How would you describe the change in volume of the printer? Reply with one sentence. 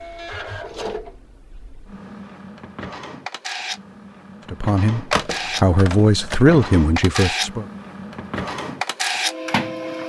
The loudness of the printer goes up.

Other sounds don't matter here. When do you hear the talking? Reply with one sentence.
You can hear the talking from 4.5 to 7.7 s.